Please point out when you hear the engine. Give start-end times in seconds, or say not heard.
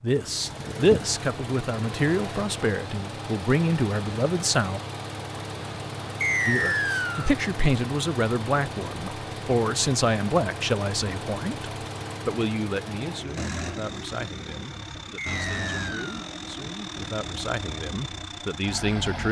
0.0-19.2.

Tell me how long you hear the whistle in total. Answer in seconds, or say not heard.
2 s.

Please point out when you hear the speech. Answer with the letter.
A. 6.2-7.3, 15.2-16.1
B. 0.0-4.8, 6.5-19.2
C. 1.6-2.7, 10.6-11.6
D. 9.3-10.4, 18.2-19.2
B.